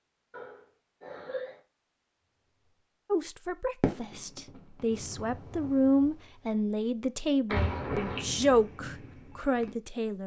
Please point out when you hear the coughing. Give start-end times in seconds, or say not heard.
0.3-1.6, 7.5-8.2.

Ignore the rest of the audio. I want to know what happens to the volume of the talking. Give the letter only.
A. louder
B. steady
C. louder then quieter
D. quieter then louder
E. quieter
A.